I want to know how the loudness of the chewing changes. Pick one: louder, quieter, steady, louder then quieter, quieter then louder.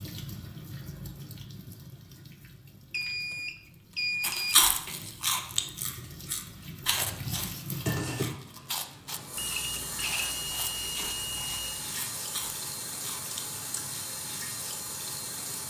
quieter.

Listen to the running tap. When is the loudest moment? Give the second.
8 s.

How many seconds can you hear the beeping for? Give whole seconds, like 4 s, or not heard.
4 s.